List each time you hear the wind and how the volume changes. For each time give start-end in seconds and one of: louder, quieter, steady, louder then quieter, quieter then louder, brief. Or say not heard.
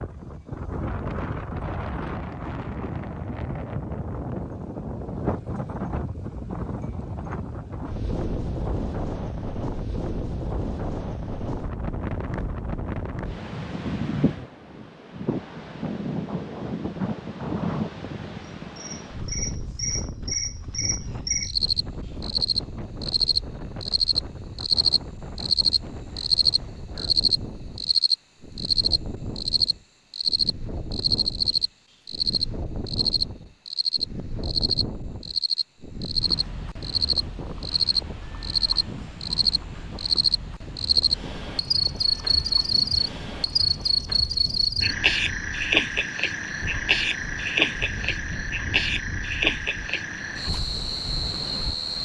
0.0-52.0 quieter.